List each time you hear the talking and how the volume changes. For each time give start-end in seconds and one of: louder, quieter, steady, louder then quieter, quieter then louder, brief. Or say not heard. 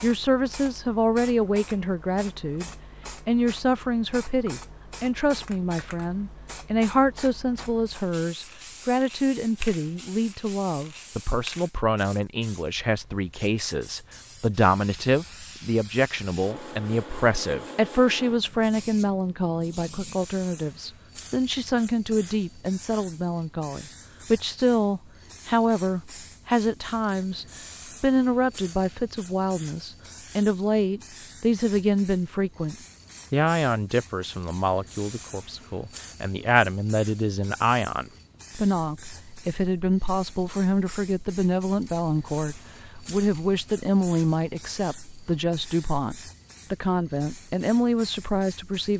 0.0-48.9 steady.